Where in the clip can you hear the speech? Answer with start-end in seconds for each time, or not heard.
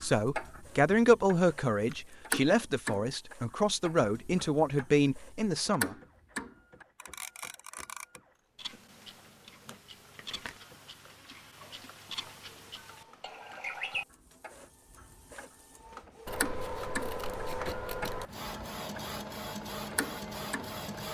0.0-6.0.